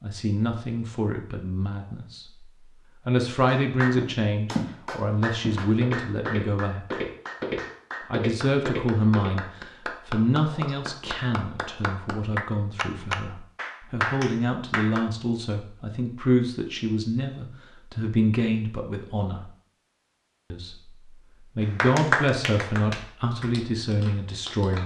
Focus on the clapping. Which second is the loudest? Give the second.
22 s.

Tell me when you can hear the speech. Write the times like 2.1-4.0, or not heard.
0.0-2.5, 3.0-7.0, 8.1-19.5, 20.5-24.8.